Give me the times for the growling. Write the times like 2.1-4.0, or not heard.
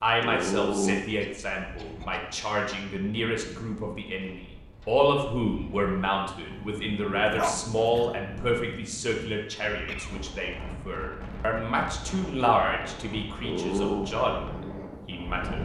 0.2-1.1, 6.5-8.4, 13.4-14.1.